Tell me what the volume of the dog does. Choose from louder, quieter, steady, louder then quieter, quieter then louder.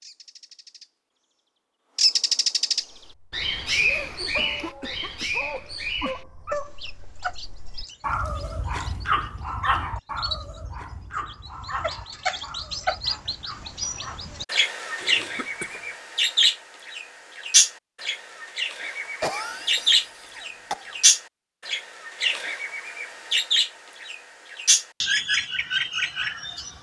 louder then quieter.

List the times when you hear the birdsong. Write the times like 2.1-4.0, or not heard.
0.0-0.9, 1.9-26.7.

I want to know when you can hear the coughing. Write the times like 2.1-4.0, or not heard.
4.3-6.2, 15.0-15.9, 19.2-20.9.